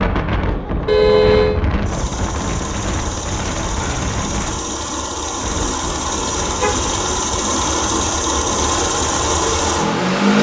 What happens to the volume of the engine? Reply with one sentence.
The volume of the engine goes up.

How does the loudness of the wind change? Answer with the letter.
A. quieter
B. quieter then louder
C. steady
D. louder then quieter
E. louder
A.